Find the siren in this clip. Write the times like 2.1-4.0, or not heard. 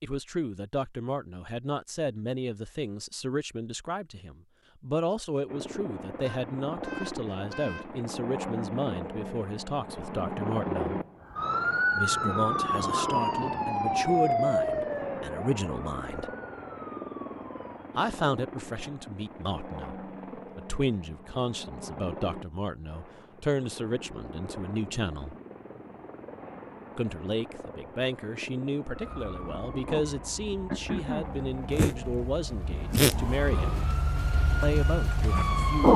11.3-17.8, 28.9-35.9.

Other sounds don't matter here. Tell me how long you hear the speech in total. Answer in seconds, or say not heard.
31 s.